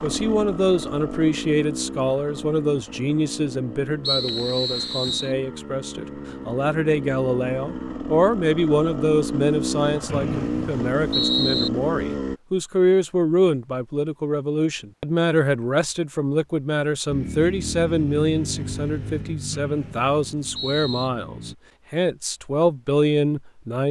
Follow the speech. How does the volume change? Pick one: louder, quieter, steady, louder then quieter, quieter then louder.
steady.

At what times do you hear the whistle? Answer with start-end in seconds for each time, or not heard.
4.0-5.3, 10.1-11.7, 19.5-21.1.